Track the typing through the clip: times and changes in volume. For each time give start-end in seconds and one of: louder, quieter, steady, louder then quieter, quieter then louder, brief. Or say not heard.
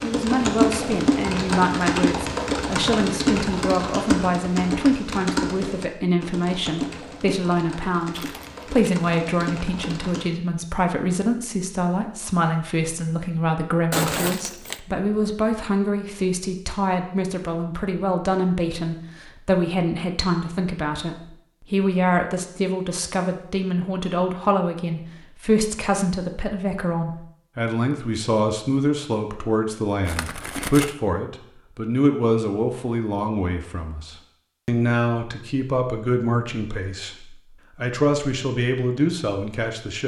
0.0-10.3 quieter.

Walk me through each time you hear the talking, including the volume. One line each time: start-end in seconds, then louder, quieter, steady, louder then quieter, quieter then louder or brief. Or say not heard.
0.0-40.0 steady.